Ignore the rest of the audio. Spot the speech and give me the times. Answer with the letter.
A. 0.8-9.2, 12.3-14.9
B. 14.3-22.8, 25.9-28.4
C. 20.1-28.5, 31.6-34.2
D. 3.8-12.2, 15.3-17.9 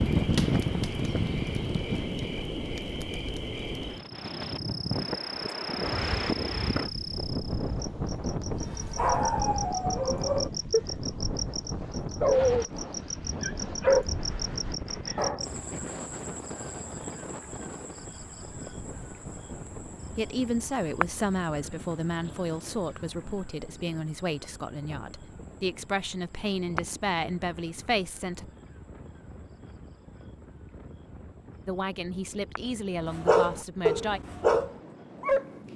C.